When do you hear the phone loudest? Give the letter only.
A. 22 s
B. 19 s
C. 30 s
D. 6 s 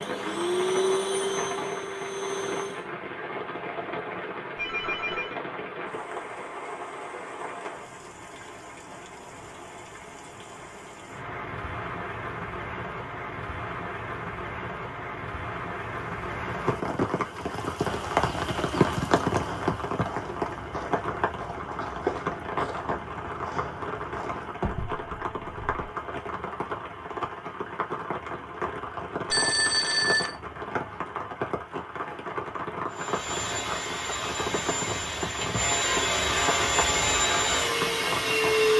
C.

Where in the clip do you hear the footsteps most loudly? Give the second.
22 s.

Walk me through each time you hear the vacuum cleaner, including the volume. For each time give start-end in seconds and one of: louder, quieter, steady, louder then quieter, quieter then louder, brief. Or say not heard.
0.0-2.9 brief
32.9-38.7 louder.